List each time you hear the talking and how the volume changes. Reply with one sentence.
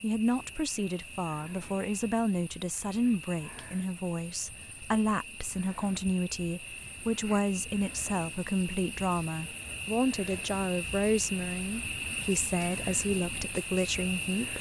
You can hear the talking from 0.0 to 14.5 s, at a steady volume.